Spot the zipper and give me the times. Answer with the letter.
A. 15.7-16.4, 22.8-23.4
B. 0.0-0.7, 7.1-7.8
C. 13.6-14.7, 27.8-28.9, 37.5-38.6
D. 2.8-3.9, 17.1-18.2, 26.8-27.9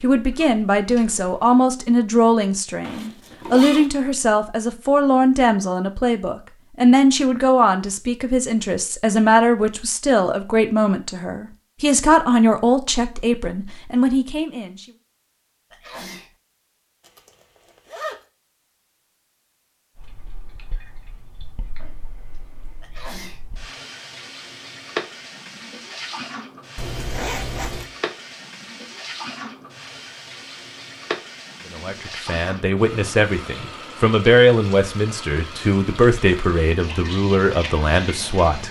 D.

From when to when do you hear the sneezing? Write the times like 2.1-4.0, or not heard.
15.7-16.4, 22.8-23.4.